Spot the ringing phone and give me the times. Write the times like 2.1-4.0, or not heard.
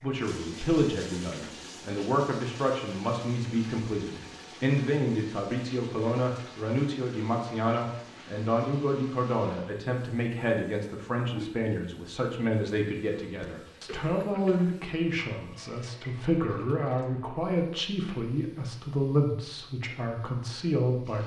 not heard.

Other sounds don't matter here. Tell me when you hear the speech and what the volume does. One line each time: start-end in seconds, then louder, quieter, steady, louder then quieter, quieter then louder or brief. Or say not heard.
0.0-21.2 steady.